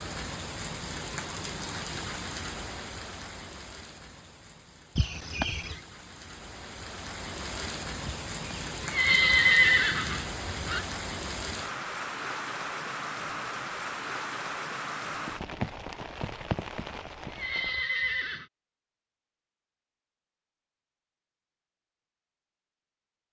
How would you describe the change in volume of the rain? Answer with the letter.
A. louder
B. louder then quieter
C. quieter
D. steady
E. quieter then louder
E.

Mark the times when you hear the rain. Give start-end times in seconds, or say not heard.
0.0-17.8.